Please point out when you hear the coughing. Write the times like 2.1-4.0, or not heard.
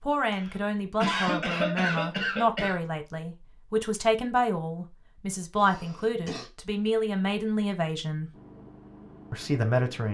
0.3-2.8, 5.5-6.5.